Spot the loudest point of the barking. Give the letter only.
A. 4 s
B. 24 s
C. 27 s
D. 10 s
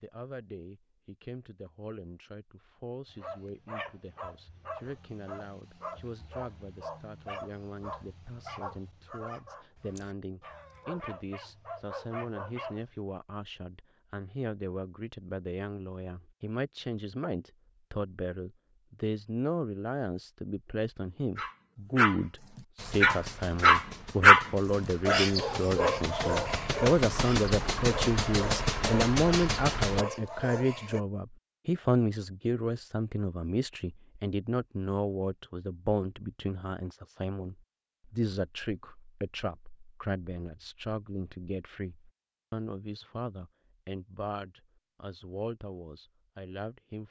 B.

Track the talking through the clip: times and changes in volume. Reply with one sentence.
The talking can be heard from 0.0 to 47.0 s, getting louder then quieter.